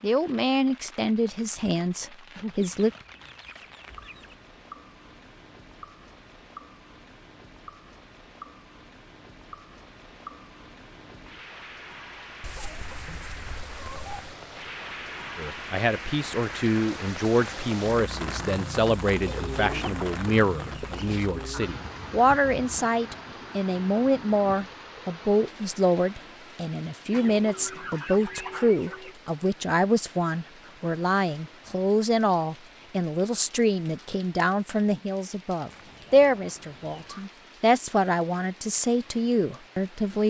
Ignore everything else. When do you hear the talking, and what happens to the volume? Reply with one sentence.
You can hear the talking briefly from 0.0 to 2.9 s; and from 15.3 to 40.2 s, at a steady volume.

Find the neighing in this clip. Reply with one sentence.
You can't hear the neighing here.